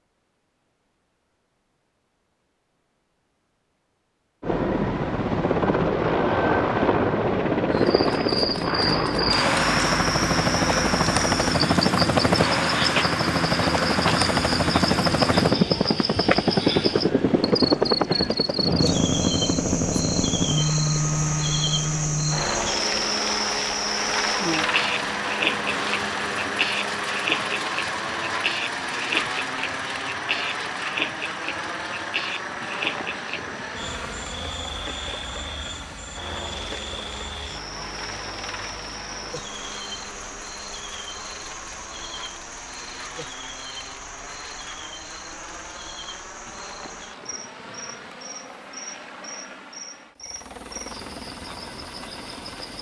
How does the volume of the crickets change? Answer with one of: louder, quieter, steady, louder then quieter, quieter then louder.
quieter.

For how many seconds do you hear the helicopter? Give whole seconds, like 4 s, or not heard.
48 s.